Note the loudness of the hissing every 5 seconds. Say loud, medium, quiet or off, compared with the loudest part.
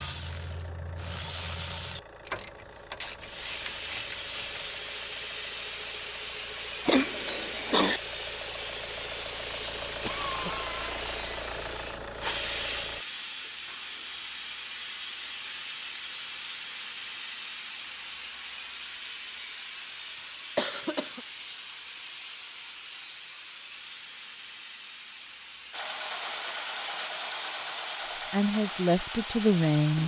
loud, loud, loud, loud, medium, medium.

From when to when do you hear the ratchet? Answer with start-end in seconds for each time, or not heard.
0.0-4.8.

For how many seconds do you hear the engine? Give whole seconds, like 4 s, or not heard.
17 s.